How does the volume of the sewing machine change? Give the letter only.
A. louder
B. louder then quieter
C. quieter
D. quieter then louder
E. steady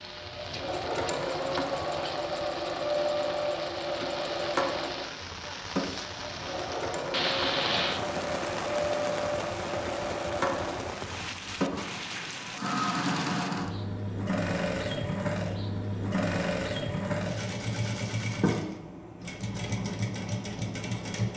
E.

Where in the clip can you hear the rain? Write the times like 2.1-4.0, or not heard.
0.0-13.5.